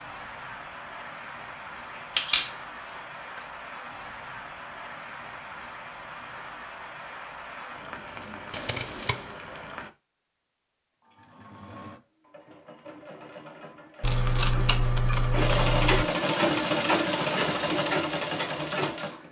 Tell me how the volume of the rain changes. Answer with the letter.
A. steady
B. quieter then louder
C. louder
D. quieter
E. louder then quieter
A.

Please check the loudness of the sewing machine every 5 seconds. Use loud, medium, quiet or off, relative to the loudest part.
off, off, quiet, loud.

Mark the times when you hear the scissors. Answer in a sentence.
You can hear the scissors from 1.8 to 3.4 s, from 8.5 to 9.2 s and from 14.0 to 16.1 s.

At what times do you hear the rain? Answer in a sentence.
You can hear the rain from 0.0 to 9.9 s.